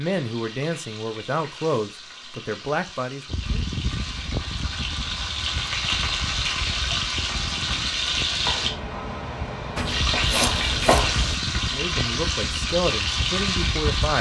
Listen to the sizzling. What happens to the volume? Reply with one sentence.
The volume of the sizzling goes up.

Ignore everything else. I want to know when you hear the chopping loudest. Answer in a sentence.
The loudest moment of the chopping is at 11 seconds.